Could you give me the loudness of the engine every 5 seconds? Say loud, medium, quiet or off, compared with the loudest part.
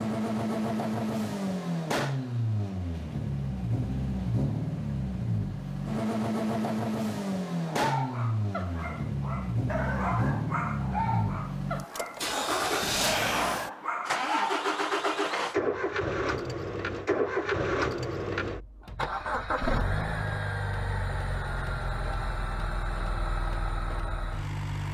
loud, loud, loud, loud, medium.